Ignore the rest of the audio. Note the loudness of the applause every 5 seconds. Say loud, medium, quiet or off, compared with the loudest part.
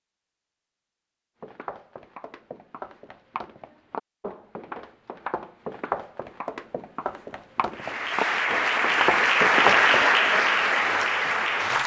off, loud, loud.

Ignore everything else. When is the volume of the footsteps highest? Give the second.
10 s.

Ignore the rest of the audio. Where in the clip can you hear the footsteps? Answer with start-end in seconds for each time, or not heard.
1.4-10.1.